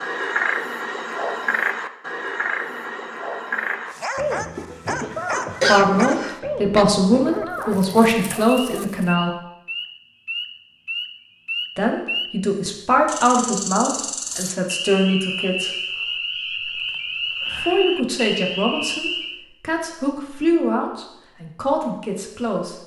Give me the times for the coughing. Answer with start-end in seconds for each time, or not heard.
5.3-6.8.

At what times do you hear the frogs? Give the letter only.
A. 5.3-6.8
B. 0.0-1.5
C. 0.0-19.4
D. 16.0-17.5
C.